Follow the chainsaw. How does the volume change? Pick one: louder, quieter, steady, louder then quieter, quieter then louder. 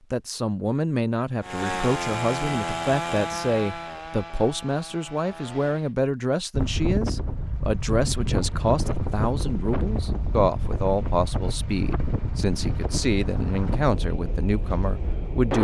quieter.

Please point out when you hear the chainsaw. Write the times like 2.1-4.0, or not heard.
1.4-6.0.